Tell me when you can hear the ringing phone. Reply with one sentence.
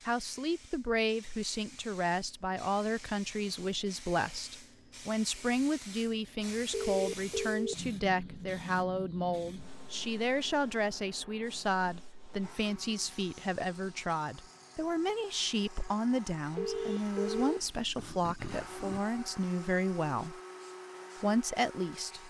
You can hear the ringing phone from 6.7 to 7.8 s and from 16.6 to 19.0 s.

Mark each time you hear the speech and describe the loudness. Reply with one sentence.
The speech can be heard from 0.1 to 20.4 s, at a steady volume; and briefly from 21.2 to 22.2 s.